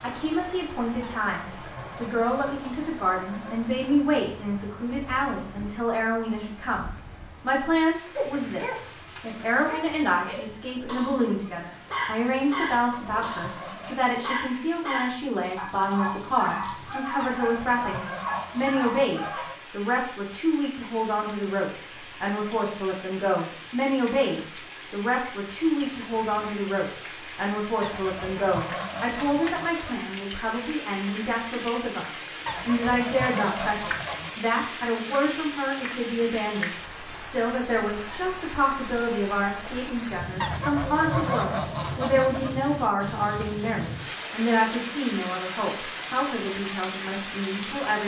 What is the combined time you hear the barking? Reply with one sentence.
The barking can be heard for 11 seconds in total.